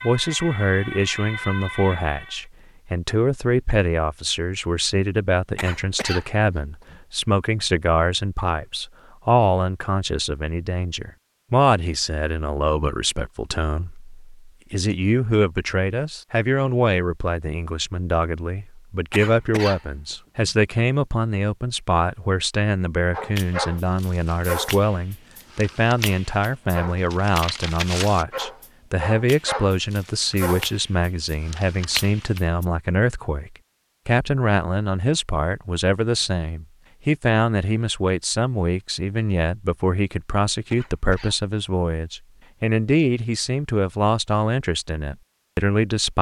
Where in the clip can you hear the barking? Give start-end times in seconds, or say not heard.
23.1-32.6.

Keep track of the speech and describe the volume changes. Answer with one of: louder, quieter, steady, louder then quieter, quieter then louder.
steady.